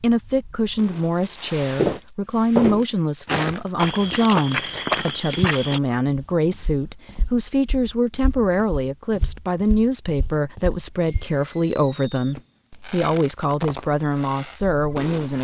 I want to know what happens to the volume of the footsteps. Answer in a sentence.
The loudness of the footsteps goes down, then up.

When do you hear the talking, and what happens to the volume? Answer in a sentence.
You can hear the talking from 0.0 to 15.3 s, at a steady volume.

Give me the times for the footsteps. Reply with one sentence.
The footsteps can be heard from 1.8 to 11.3 s.